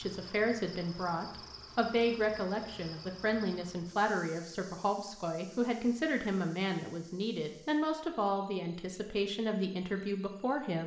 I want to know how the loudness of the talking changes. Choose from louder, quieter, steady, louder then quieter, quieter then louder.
steady.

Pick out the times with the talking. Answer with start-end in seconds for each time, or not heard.
0.0-10.8.